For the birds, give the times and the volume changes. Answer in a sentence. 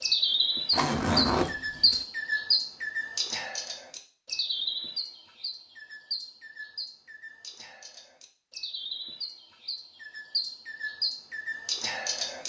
You can hear the birds from 0.0 to 12.4 s, getting quieter then louder.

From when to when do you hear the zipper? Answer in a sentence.
The zipper can be heard from 0.7 to 2.0 s.